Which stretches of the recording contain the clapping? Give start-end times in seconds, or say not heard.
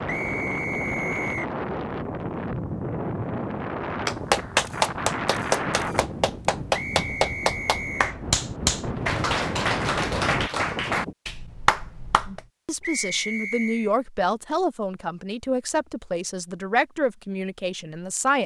4.0-12.4.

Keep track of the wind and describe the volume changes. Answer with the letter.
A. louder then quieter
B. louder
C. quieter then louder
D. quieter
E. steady
C.